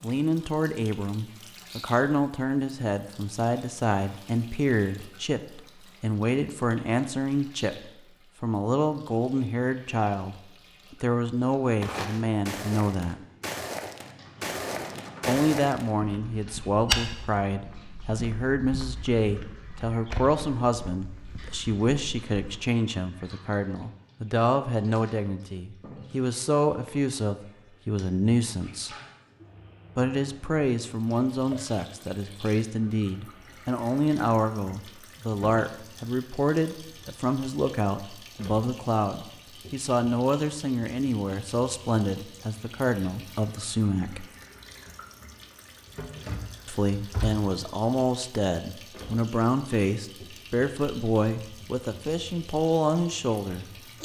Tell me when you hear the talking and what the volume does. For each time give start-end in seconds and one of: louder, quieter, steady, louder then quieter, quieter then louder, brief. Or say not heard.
0.0-13.2 steady
15.2-28.9 steady
29.9-44.2 steady
46.6-53.6 steady.